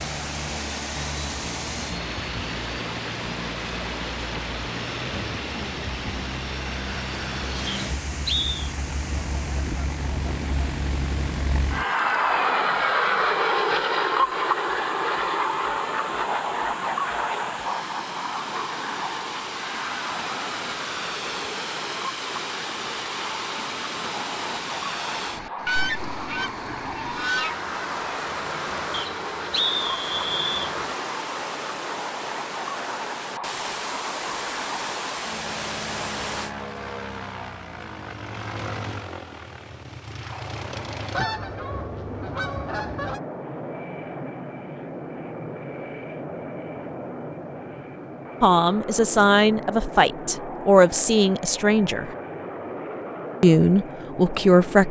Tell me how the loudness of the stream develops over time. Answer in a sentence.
The volume of the stream goes down, then up.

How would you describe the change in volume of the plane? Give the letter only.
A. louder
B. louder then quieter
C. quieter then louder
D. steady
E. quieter
B.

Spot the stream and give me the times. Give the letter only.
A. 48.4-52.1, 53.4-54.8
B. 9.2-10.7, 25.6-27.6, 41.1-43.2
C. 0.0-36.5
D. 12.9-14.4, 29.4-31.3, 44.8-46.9
C.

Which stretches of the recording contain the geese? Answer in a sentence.
The geese can be heard from 9.2 to 10.7 s, from 25.6 to 27.6 s and from 41.1 to 43.2 s.